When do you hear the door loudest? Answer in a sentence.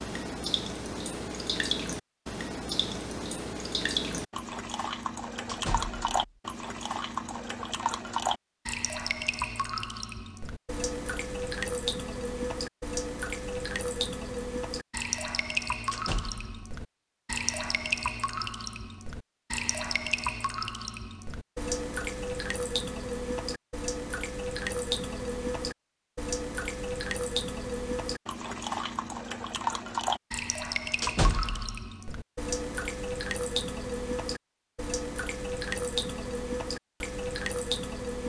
The loudest moment of the door is at 31 seconds.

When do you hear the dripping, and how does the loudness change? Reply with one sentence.
The dripping can be heard from 0.0 to 38.2 s, at a steady volume.